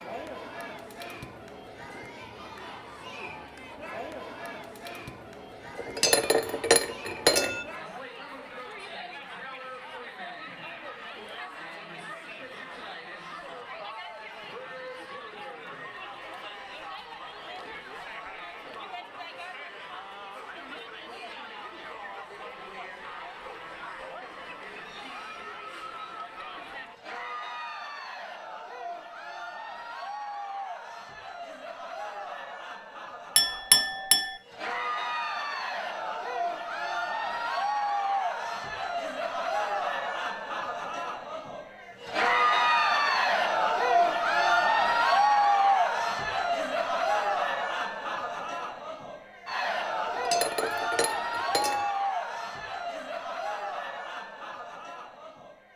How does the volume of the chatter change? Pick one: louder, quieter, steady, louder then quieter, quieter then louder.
louder.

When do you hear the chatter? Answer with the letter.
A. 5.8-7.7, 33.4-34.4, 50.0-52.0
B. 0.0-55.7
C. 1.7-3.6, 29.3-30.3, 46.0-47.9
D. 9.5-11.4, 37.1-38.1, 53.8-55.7
B.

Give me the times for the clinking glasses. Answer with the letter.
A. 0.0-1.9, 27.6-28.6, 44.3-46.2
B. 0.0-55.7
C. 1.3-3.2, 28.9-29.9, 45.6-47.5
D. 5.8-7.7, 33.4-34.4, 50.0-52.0
D.